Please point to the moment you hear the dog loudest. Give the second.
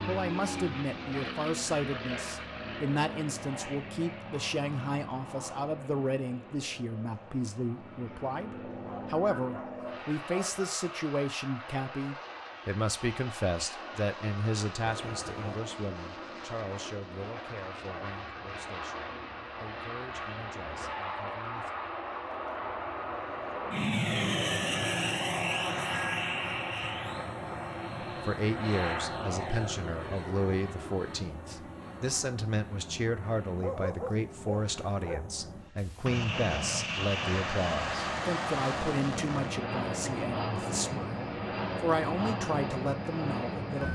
34 s.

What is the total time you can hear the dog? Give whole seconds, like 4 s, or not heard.
4 s.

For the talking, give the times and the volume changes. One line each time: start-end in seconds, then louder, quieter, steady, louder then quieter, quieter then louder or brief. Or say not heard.
0.1-21.7 quieter
28.0-43.8 steady.